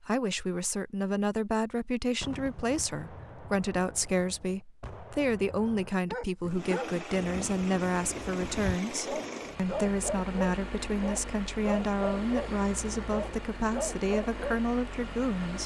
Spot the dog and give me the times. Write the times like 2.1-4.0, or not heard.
6.1-14.6.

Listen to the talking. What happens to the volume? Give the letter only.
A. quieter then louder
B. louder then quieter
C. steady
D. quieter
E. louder
C.